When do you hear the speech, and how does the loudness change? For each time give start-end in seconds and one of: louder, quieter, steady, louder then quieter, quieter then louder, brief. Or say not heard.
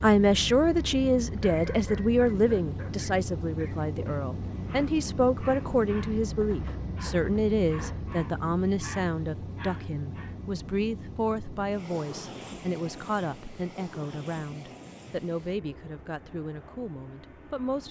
0.0-17.8 quieter.